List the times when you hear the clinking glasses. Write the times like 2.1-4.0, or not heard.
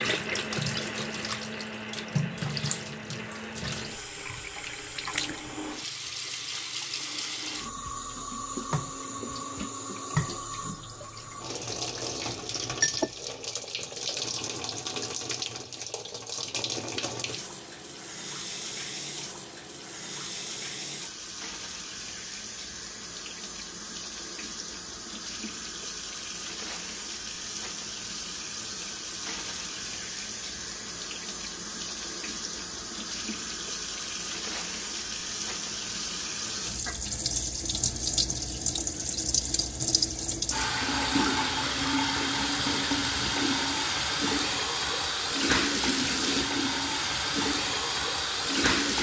12.2-13.1.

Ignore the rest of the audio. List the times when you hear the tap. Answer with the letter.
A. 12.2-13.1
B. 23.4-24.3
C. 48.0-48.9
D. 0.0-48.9
D.